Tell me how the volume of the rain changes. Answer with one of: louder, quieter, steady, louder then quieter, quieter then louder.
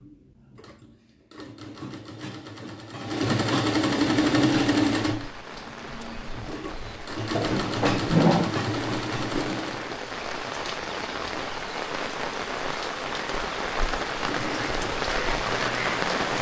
louder.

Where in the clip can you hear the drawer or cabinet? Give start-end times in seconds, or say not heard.
7.3-8.6.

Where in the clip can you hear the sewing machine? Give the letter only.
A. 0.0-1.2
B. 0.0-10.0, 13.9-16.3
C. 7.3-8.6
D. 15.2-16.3
B.